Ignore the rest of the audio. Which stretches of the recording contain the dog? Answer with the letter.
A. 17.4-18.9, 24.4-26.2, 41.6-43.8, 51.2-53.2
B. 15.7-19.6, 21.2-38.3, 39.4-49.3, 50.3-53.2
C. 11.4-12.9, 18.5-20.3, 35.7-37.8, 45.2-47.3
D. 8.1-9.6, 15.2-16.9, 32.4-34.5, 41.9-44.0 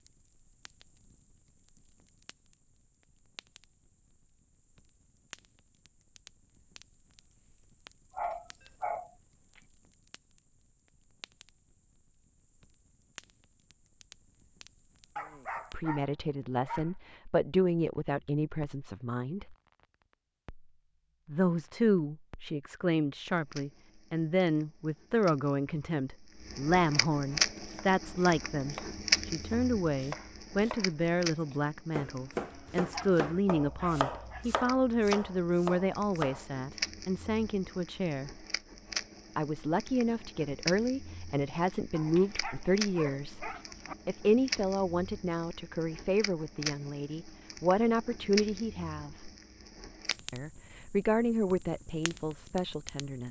D.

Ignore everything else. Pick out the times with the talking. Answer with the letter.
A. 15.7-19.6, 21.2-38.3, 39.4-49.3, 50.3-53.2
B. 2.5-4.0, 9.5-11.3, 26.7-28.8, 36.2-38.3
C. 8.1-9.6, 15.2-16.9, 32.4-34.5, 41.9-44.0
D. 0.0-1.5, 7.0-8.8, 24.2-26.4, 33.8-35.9
A.